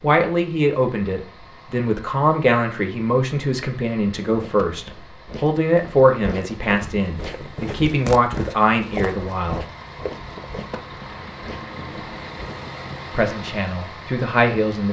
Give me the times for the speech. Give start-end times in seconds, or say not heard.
0.0-9.7, 13.2-14.8.